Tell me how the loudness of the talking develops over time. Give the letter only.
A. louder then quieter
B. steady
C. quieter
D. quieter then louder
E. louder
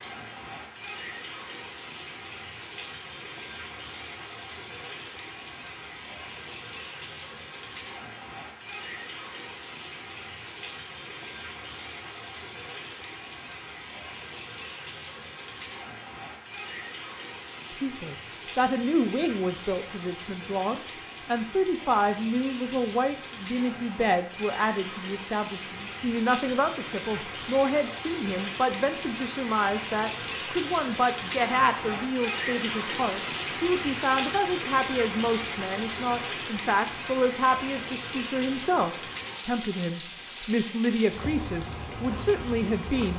B.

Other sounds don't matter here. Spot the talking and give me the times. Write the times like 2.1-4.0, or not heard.
17.7-43.1.